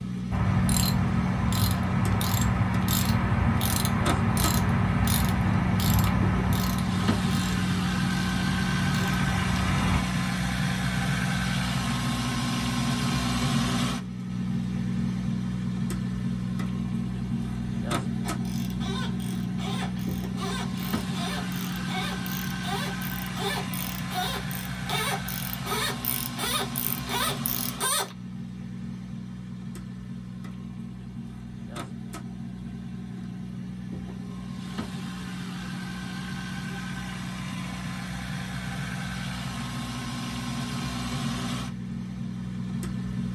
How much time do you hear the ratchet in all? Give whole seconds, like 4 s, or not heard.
20 s.